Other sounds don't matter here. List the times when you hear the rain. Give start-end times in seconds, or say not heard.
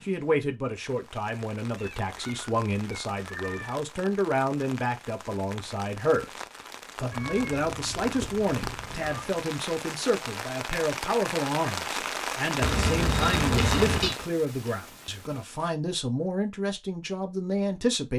0.0-15.7.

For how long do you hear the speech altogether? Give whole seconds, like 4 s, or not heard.
18 s.